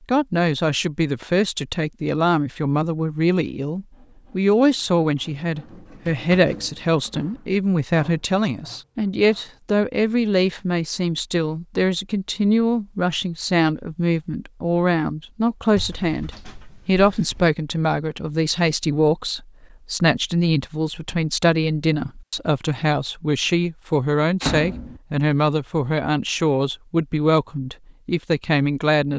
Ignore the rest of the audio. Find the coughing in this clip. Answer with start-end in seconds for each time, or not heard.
not heard.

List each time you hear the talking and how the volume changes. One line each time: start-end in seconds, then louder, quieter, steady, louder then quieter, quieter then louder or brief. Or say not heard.
0.1-29.1 steady.